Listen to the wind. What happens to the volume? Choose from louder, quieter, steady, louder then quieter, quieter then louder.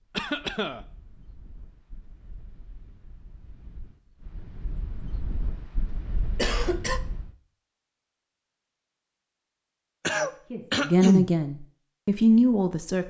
louder.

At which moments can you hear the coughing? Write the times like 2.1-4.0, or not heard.
0.1-0.8, 6.3-7.0, 10.0-11.3.